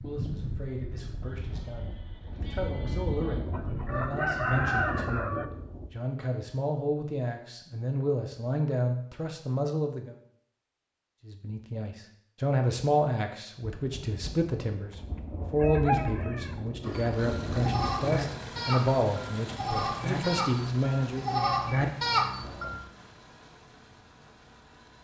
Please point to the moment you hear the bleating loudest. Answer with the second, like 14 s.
22 s.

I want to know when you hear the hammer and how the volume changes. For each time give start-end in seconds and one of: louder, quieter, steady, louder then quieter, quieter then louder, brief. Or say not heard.
not heard.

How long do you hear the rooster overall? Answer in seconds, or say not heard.
3 s.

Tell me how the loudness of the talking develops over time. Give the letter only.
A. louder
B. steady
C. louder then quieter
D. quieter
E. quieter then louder
A.